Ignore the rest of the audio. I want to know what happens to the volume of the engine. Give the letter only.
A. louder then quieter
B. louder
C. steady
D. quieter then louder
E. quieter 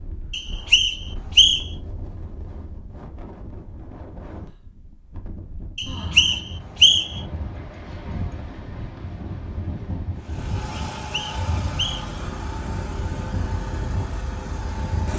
C.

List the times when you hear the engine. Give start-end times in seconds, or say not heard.
10.2-15.1.